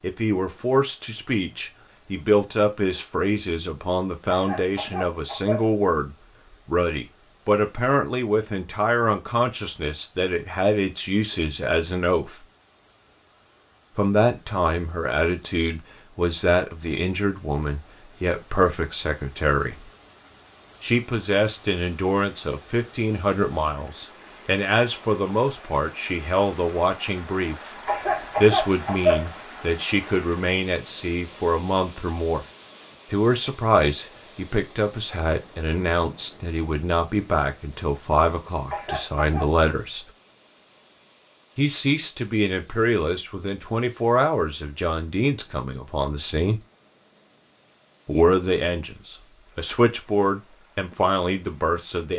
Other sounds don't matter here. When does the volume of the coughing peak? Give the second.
29 s.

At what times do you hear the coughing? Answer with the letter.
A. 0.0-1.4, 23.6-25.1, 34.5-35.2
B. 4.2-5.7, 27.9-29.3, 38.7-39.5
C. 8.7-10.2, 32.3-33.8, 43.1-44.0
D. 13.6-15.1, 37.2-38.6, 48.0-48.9
B.